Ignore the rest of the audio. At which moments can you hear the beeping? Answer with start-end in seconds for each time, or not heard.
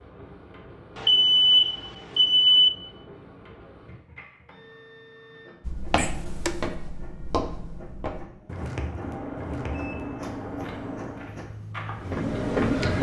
0.9-2.7, 6.0-6.7, 9.0-11.3.